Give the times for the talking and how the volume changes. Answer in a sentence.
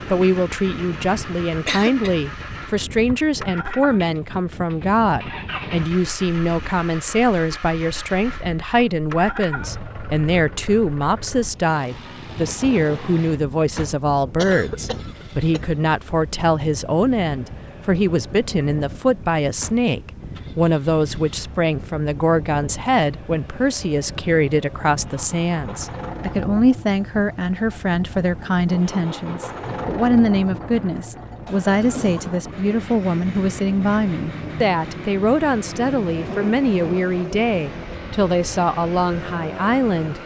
The talking can be heard from 0.1 to 40.2 s, at a steady volume.